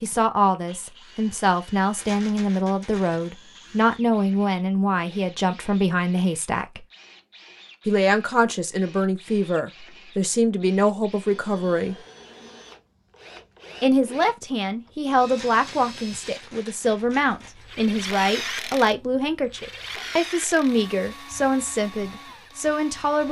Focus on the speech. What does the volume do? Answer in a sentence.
The volume of the speech stays about the same.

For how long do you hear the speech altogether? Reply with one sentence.
You can hear the speech for 20 seconds altogether.